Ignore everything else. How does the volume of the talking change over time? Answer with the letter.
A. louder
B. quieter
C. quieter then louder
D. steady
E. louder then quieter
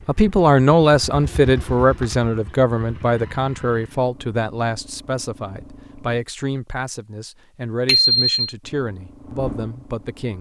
B.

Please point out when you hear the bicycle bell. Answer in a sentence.
You can hear the bicycle bell from 7.8 to 8.5 s.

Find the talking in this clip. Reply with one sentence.
You can hear the talking from 0.1 to 10.3 s.